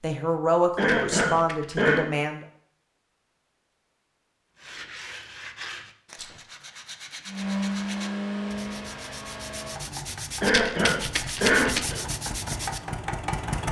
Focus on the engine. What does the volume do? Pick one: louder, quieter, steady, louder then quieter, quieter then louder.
quieter then louder.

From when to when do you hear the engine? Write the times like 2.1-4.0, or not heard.
7.2-13.6.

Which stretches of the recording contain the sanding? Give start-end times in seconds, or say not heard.
4.5-12.8.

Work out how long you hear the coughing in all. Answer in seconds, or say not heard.
3 s.